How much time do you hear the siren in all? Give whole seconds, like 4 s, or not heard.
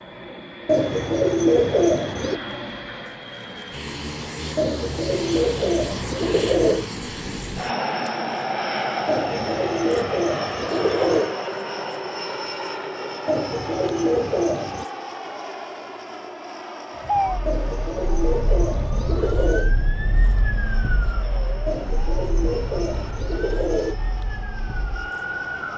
9 s.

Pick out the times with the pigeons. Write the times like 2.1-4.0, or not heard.
0.7-2.4, 4.5-6.8, 9.1-11.3, 13.2-14.8, 17.4-19.8, 21.6-23.9.